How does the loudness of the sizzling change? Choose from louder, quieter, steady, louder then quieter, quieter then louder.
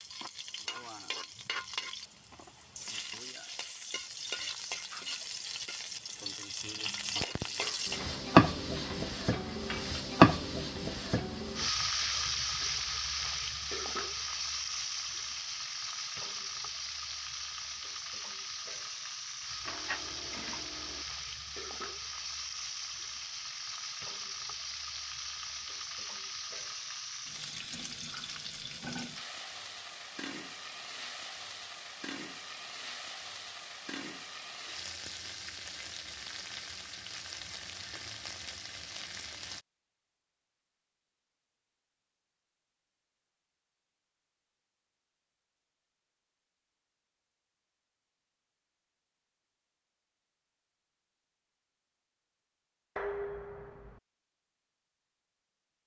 louder then quieter.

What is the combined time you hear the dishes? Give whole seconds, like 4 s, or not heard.
5 s.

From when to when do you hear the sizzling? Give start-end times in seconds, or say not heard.
0.0-39.6.